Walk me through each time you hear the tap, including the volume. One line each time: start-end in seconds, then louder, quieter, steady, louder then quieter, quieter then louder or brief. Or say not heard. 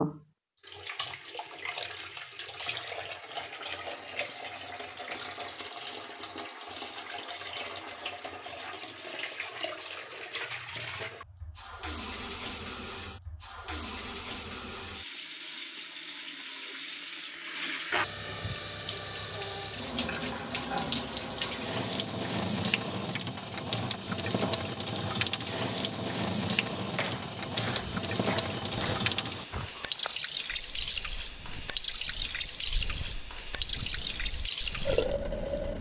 0.0-35.7 louder.